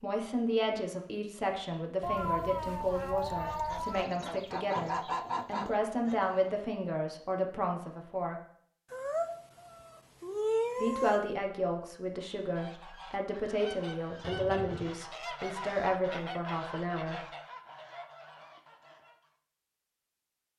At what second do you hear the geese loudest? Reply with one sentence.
The volume of the geese peaks at 5 seconds.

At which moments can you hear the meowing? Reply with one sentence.
The meowing can be heard from 2.0 to 4.0 s, from 8.9 to 11.2 s and from 14.2 to 14.9 s.